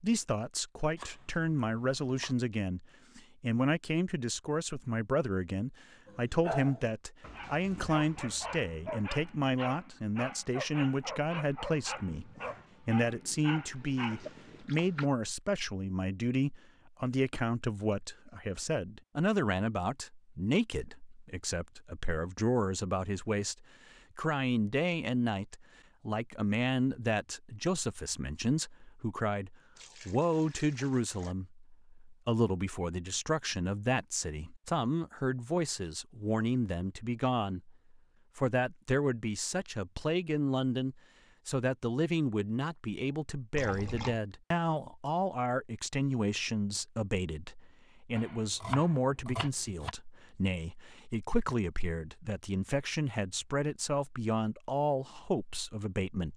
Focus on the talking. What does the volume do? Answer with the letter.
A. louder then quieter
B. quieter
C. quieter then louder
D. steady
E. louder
D.